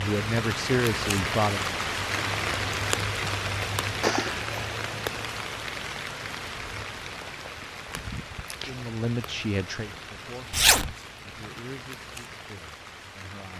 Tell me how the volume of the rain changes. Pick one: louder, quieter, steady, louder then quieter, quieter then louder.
quieter.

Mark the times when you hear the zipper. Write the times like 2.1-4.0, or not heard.
4.0-4.8, 10.5-10.9.